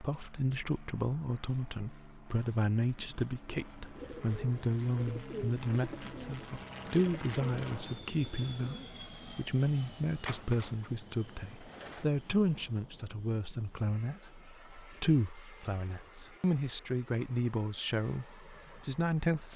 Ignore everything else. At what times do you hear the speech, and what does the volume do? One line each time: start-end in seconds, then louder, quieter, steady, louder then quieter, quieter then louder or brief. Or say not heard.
0.0-19.5 steady.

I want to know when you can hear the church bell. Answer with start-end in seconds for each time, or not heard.
not heard.